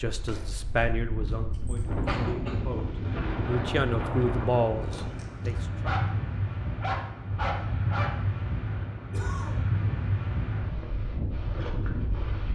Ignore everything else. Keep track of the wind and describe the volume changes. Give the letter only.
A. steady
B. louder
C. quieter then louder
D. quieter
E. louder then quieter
A.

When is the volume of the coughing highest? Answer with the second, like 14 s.
2 s.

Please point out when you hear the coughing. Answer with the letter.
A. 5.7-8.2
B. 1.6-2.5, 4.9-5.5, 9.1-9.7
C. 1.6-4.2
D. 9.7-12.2
B.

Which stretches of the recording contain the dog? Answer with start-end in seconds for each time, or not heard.
5.7-8.2.